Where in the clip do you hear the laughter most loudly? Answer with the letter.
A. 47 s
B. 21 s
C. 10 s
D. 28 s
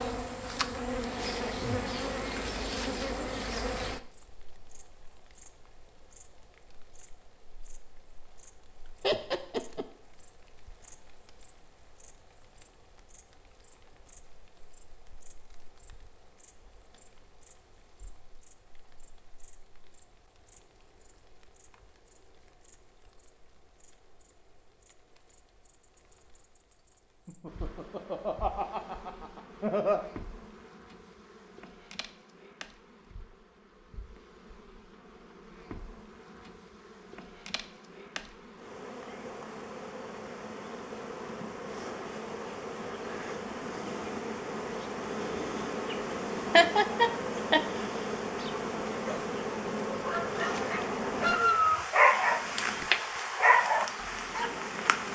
A.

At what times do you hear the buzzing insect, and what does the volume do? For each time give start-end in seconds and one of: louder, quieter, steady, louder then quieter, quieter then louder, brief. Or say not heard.
0.0-55.1 quieter then louder.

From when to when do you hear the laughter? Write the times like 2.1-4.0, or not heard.
9.0-9.8, 27.2-30.0, 46.5-47.6.